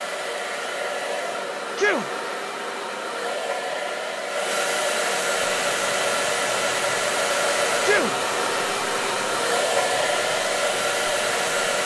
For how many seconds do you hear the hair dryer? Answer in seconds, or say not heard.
12 s.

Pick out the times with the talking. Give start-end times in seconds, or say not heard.
not heard.